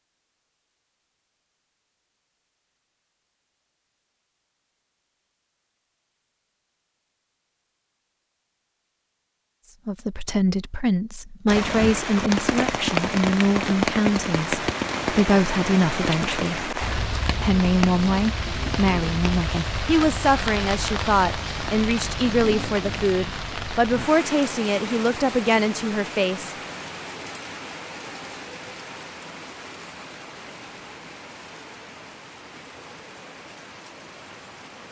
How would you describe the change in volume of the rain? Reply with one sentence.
The loudness of the rain goes down.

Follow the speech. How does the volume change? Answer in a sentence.
The volume of the speech stays about the same.